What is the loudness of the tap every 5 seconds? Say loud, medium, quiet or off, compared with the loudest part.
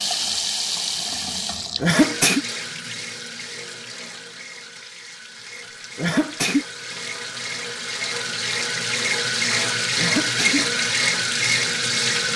medium, medium, loud.